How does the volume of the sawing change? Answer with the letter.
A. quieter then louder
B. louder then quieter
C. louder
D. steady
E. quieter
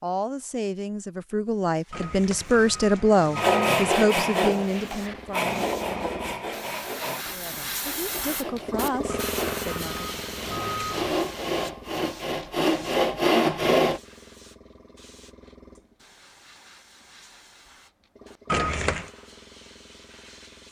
A.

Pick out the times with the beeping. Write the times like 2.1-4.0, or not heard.
1.9-3.8, 9.1-11.1, 18.5-19.1.